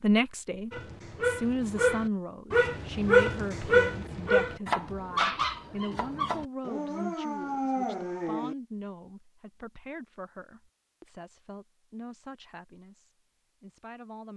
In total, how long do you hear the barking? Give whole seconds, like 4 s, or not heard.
8 s.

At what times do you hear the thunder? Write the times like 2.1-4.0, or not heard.
not heard.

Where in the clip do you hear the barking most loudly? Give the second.
3 s.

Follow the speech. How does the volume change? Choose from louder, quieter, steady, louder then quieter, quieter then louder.
quieter.